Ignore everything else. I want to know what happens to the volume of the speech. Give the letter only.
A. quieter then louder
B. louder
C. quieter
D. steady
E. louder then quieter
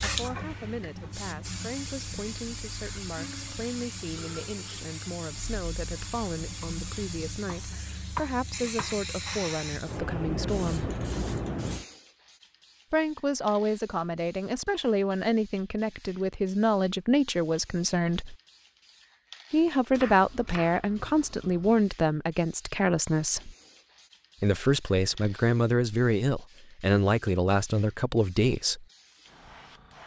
B.